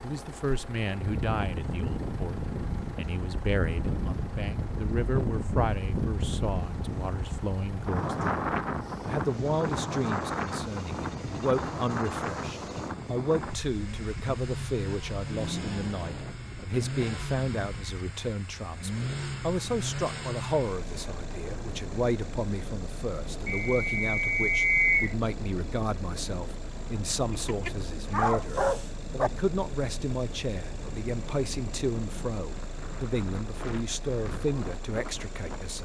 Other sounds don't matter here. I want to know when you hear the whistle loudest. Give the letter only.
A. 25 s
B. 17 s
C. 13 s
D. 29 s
A.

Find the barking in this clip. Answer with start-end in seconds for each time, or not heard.
27.3-29.3.